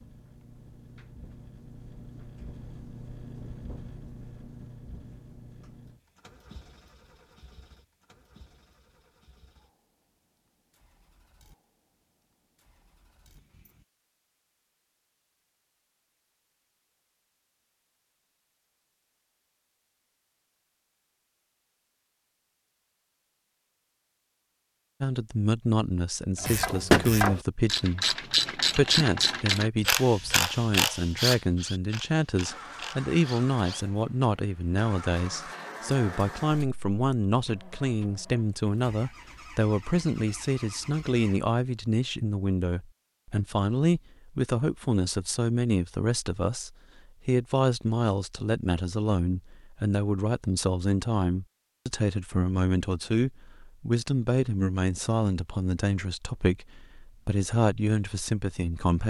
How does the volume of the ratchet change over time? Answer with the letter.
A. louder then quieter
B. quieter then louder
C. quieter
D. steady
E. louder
C.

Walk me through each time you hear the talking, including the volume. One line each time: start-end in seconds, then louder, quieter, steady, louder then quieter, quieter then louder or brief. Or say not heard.
25.0-59.0 steady.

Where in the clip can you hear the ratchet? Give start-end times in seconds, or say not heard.
26.4-33.9.